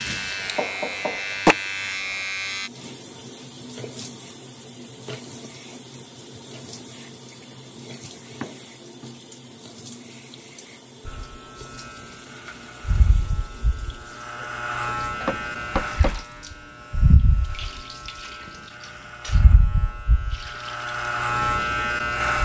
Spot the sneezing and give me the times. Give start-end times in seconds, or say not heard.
not heard.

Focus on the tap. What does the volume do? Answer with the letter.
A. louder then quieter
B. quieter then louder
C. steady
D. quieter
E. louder
D.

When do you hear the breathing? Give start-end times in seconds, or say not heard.
not heard.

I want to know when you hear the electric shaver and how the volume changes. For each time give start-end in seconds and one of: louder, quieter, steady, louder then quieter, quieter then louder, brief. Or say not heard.
0.0-2.7 brief
11.1-22.3 louder.